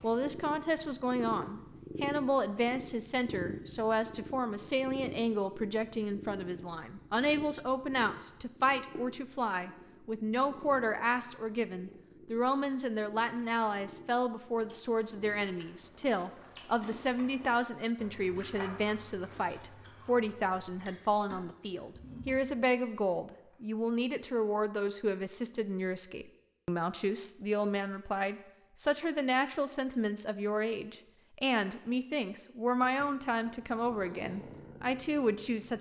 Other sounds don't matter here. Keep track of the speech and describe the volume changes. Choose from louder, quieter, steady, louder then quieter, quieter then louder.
steady.